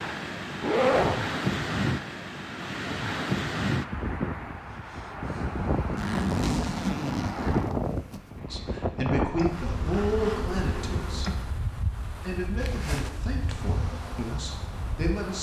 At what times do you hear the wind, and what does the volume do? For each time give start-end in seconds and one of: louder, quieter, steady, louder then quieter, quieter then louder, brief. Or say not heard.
0.0-15.3 quieter.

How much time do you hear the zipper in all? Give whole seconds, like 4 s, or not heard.
4 s.